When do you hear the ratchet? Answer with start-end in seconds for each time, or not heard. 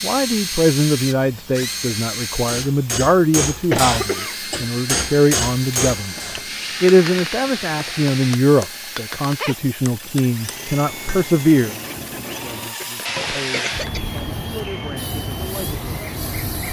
not heard.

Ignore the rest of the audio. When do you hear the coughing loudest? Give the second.
4 s.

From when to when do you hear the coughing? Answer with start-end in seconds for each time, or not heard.
3.7-4.3, 12.1-14.1.